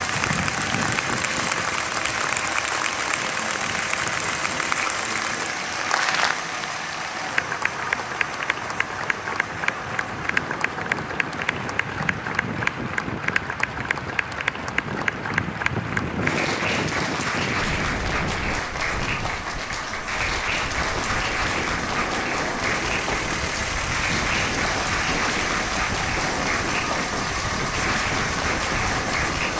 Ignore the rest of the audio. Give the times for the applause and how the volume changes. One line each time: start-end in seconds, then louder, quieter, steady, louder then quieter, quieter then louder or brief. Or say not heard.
0.0-29.5 steady.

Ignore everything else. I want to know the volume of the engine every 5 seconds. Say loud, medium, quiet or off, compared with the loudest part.
loud, loud, medium, medium, loud, loud.